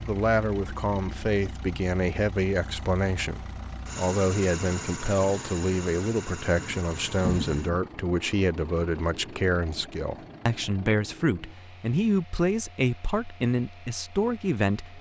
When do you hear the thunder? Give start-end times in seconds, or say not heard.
6.5-7.8.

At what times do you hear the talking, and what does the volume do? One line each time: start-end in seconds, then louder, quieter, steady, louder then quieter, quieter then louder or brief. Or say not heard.
0.0-14.9 steady.